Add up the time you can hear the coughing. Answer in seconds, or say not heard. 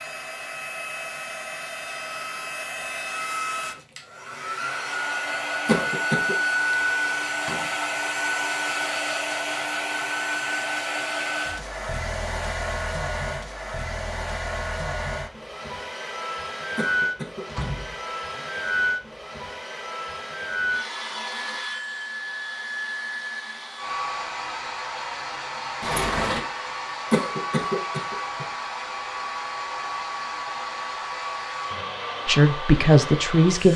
3 s.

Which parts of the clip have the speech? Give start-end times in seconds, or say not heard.
32.2-33.7.